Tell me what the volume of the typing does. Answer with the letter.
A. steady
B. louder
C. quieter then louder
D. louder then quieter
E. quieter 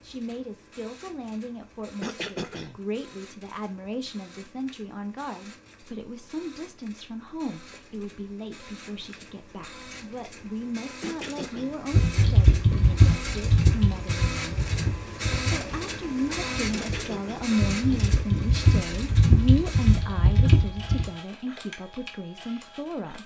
C.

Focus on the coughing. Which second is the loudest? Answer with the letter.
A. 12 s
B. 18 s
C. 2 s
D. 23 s
C.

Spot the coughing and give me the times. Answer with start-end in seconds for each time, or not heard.
2.0-2.8, 11.0-12.4, 16.7-18.1.